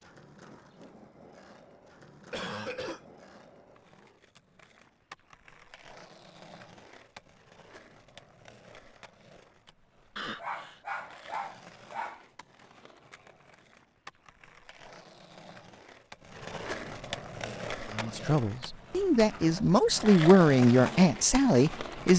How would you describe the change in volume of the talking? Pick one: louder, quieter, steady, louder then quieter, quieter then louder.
louder.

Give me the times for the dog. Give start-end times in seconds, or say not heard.
10.3-12.2.